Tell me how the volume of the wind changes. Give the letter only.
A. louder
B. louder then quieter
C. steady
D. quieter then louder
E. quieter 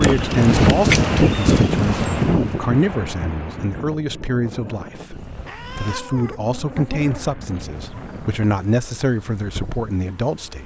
E.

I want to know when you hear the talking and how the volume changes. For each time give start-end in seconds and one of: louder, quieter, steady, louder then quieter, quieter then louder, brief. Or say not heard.
0.0-10.6 steady.